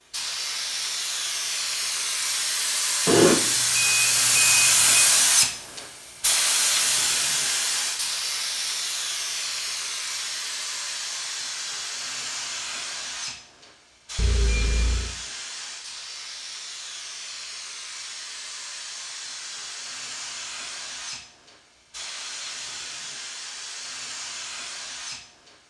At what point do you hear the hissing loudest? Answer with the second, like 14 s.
5 s.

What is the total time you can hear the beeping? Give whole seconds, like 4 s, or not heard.
3 s.